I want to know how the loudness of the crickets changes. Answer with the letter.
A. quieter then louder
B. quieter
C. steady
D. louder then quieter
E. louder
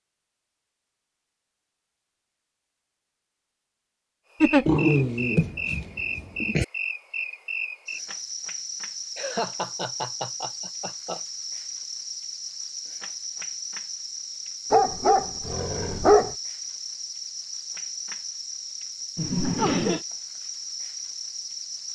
C.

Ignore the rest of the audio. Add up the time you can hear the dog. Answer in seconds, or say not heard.
4 s.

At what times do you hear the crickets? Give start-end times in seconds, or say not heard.
4.3-21.9.